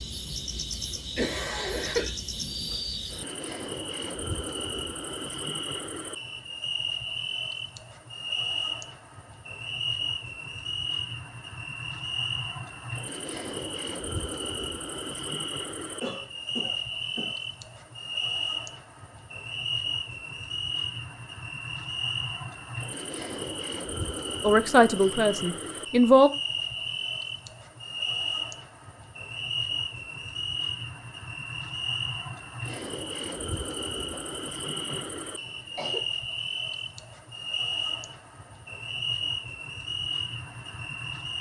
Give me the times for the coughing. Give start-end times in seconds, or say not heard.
0.7-2.1, 16.0-17.4, 34.1-36.0.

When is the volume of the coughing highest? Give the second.
2 s.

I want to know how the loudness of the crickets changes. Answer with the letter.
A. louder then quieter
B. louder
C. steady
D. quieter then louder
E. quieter
C.